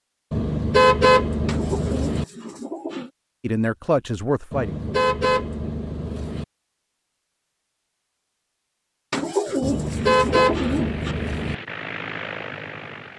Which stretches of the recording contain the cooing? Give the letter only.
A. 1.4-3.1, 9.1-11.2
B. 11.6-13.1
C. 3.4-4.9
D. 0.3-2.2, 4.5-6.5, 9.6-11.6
A.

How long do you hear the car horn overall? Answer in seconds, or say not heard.
6 s.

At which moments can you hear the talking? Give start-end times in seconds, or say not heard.
3.4-4.9.